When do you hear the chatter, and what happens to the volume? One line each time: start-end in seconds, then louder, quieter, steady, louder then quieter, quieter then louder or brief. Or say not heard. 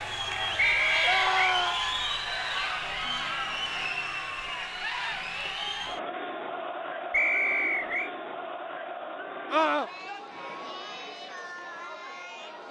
0.0-12.6 quieter.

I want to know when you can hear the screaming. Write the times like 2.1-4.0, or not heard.
1.0-1.8, 9.5-9.9.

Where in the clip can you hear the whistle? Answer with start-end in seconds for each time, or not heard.
0.6-1.6, 7.1-8.1.